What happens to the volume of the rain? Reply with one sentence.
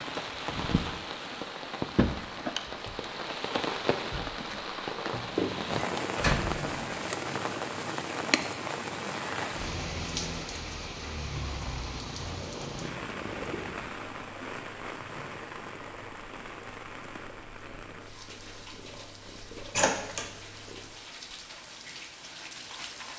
The volume of the rain goes down.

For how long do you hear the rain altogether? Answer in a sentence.
The rain can be heard for 23 seconds in total.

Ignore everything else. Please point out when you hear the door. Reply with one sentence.
The door can be heard from 6.2 to 6.8 s and from 19.8 to 20.2 s.